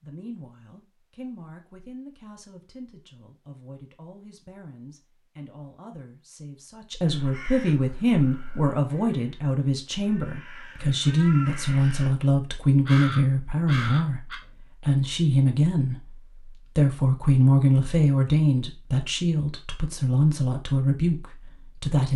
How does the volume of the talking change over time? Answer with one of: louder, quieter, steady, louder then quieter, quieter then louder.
louder.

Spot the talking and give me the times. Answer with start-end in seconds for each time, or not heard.
0.0-16.1, 16.8-22.1.